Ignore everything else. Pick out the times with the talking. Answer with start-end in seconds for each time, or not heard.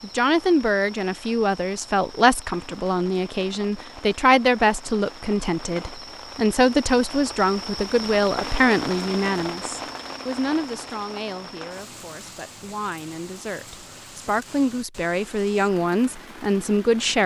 0.0-17.2.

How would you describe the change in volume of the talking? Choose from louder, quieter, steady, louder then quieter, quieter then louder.
quieter then louder.